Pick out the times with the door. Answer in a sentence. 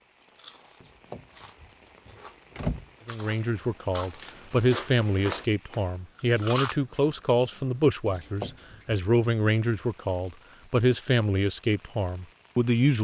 You can hear the door from 0.8 to 2.9 s and from 8.1 to 8.9 s.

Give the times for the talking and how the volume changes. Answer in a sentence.
The talking can be heard from 3.0 to 12.9 s, at a steady volume.